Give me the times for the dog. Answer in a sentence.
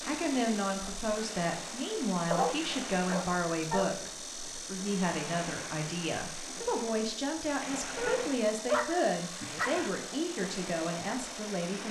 The dog can be heard from 2.3 to 3.9 s and from 8.0 to 9.9 s.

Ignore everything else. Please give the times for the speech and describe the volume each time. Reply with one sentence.
You can hear the speech from 0.1 to 11.8 s, at a steady volume.